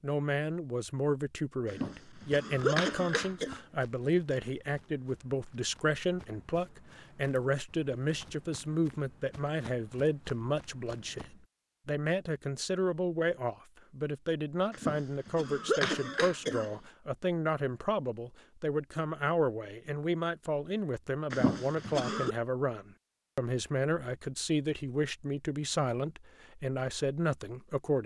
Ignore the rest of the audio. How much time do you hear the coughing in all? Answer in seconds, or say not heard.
5 s.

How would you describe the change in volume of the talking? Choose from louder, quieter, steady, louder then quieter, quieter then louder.
steady.